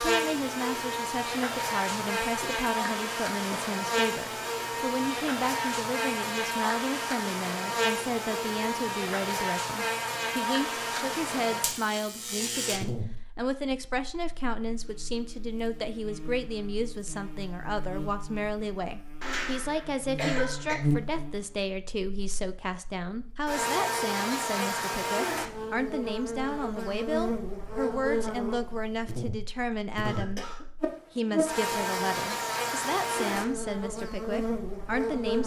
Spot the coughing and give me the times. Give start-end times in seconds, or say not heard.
2.4-3.8, 19.2-20.8, 29.7-30.6.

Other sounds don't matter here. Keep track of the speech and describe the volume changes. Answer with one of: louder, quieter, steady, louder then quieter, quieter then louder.
steady.